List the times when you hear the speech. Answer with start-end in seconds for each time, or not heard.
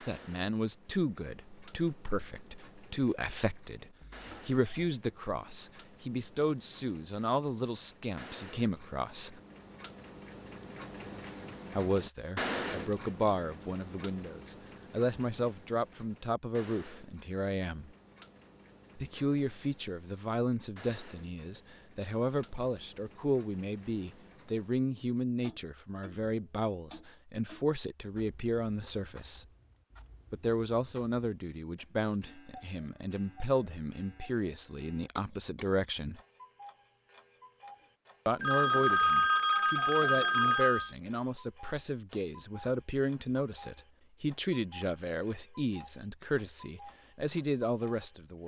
0.1-9.4, 11.8-17.9, 18.9-29.4, 30.3-36.2, 38.2-48.4.